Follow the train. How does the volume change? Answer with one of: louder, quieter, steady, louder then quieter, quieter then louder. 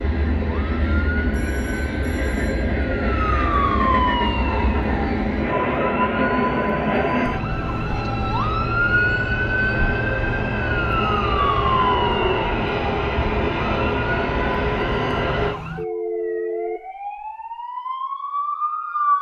steady.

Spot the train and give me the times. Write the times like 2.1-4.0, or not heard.
0.0-15.6.